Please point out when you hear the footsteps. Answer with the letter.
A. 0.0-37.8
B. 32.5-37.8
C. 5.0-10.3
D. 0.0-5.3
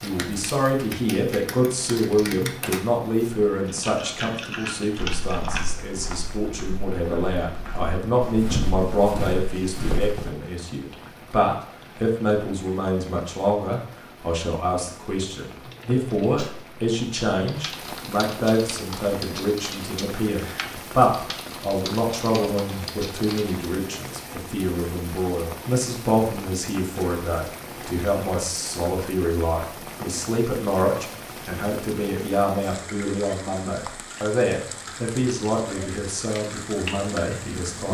C.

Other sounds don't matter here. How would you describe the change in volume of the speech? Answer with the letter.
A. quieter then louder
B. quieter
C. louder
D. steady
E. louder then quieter
D.